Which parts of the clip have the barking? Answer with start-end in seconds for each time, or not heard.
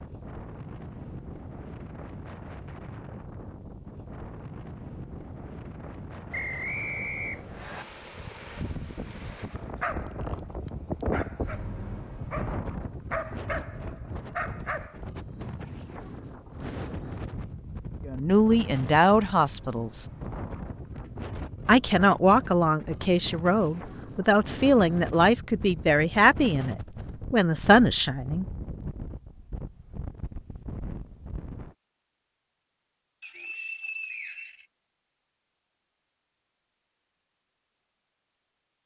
9.6-15.0.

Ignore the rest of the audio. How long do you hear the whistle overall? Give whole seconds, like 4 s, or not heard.
3 s.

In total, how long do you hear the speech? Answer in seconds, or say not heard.
9 s.